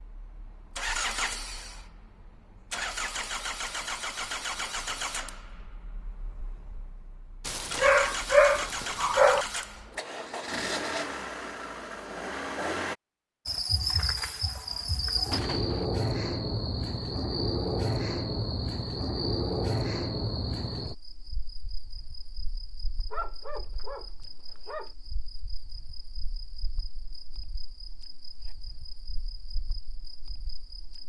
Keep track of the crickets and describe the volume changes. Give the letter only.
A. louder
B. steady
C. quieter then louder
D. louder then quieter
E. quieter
E.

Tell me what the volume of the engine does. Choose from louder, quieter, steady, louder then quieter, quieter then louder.
quieter then louder.